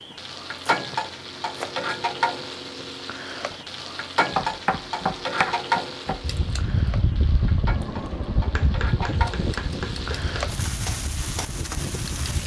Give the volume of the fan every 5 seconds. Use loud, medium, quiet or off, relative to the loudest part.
off, loud, medium.